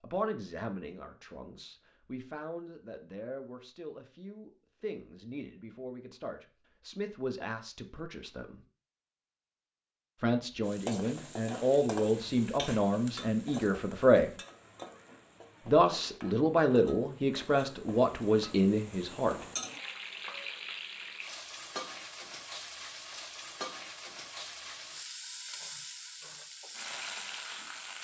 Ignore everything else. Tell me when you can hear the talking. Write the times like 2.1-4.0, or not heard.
0.0-8.6, 10.2-14.3, 15.7-19.4.